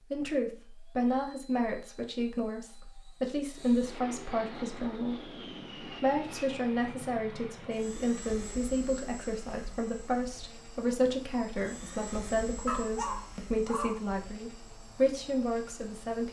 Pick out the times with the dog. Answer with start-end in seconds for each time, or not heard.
12.7-14.0.